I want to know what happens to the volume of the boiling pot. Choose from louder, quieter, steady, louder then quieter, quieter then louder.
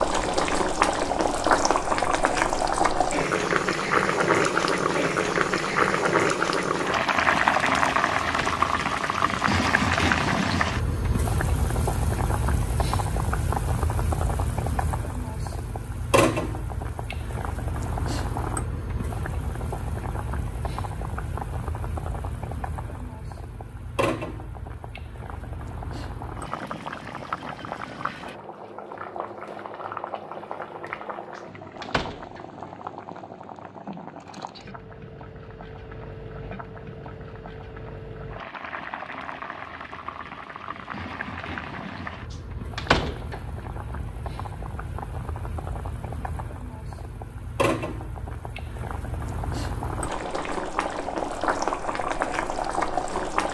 quieter then louder.